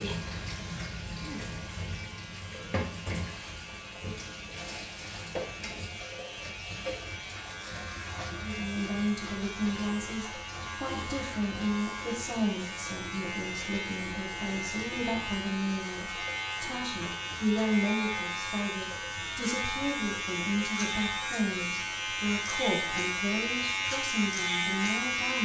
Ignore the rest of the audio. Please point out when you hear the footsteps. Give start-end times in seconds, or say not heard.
not heard.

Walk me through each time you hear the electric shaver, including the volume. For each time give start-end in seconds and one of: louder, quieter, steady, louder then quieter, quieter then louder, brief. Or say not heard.
0.0-25.4 louder.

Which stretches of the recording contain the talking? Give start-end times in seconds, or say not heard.
8.3-25.4.